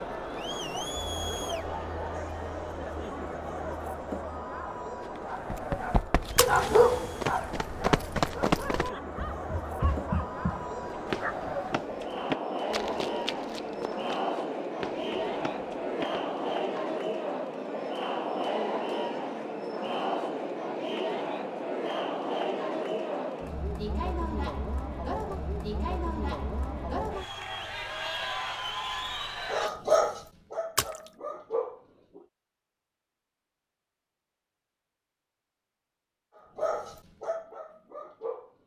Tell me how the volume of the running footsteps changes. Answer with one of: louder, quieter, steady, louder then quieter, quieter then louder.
quieter.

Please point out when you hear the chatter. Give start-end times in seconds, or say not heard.
0.0-29.7.